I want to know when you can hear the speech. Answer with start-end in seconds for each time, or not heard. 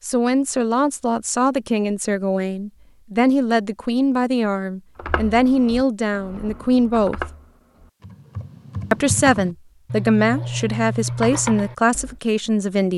0.0-7.2, 8.9-12.9.